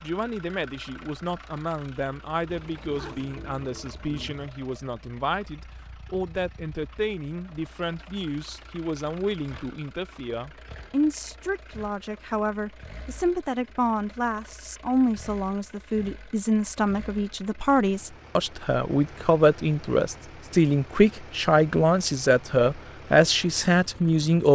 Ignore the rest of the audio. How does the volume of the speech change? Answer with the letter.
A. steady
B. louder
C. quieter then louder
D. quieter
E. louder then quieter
B.